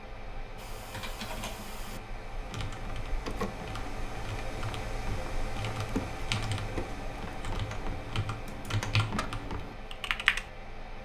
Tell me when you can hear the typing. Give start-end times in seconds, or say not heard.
0.6-10.5.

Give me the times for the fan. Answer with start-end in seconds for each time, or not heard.
0.0-11.0.